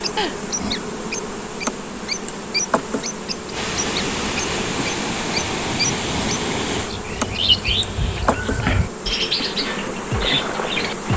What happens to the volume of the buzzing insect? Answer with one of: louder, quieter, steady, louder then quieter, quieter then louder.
steady.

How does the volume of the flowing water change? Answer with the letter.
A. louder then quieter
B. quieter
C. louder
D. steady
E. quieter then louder
C.